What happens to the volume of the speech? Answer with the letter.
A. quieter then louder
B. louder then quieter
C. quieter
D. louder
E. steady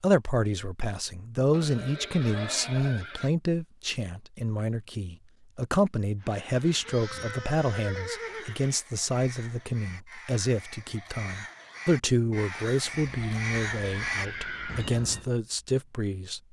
E.